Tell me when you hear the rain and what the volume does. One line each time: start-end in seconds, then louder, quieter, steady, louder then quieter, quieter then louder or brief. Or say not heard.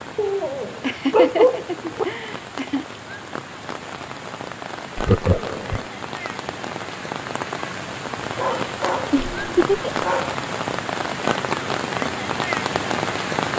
0.0-13.5 louder.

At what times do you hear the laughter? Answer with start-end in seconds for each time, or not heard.
0.8-2.9, 5.0-5.8, 9.1-10.1.